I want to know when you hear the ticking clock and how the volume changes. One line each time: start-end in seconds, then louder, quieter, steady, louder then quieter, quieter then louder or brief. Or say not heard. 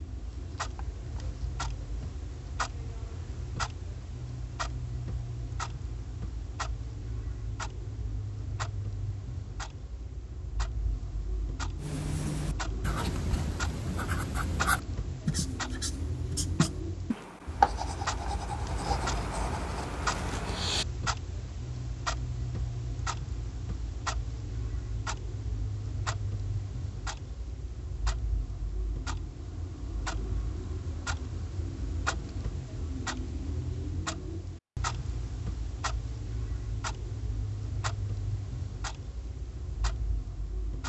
0.0-40.8 steady.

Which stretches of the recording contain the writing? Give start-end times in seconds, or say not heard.
11.8-20.9.